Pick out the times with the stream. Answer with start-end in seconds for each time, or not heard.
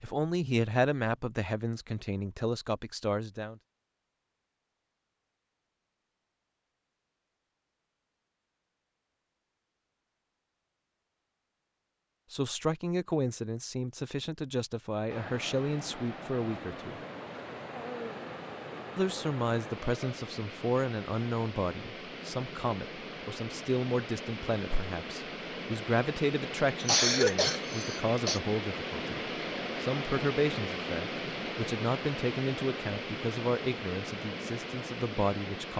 15.1-35.7.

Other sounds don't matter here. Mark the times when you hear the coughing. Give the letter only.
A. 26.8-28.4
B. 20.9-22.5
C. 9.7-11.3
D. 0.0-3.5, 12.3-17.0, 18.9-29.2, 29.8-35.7
A.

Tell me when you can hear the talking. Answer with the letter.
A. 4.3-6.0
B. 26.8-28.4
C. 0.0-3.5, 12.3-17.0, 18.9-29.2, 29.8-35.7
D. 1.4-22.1
C.